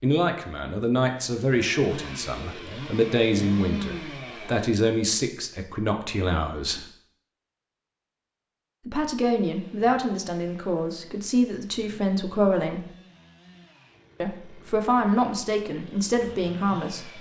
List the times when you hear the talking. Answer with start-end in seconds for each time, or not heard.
0.0-6.8, 8.8-12.8, 14.2-17.1.